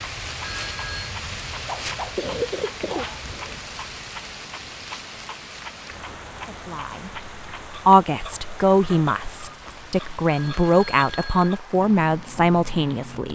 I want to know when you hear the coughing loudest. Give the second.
2 s.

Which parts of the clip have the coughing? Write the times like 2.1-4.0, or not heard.
1.5-3.5.